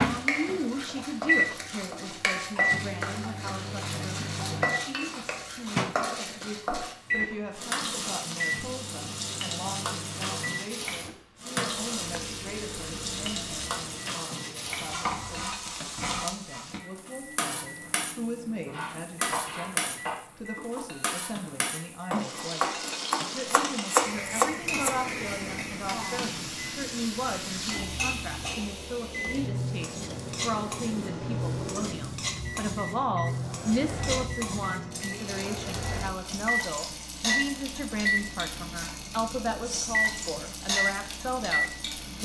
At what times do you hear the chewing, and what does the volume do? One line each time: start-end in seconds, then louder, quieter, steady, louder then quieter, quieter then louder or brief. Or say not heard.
not heard.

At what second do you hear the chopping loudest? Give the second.
24 s.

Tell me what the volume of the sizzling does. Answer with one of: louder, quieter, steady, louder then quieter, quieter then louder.
steady.